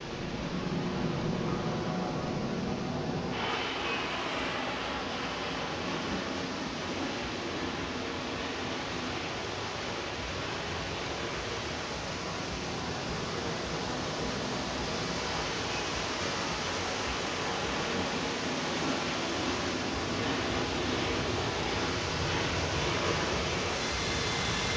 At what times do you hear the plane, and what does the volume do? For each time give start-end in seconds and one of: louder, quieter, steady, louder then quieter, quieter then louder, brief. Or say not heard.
0.0-24.7 quieter then louder.